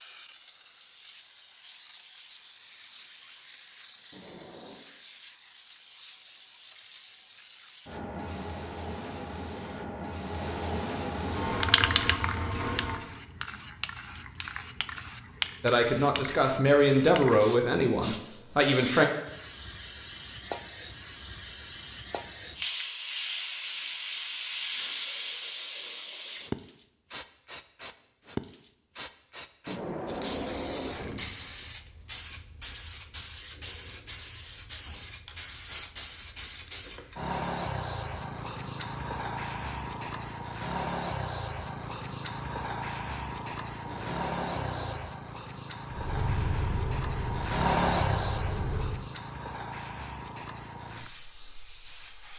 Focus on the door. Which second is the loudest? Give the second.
30 s.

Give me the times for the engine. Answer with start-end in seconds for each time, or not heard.
11.2-13.2, 45.9-49.0.